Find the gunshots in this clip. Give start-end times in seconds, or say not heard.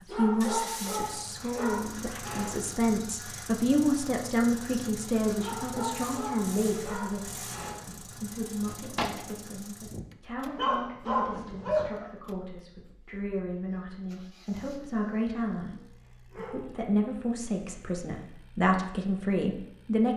8.7-9.3.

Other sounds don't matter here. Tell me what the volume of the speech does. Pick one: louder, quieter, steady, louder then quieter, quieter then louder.
quieter then louder.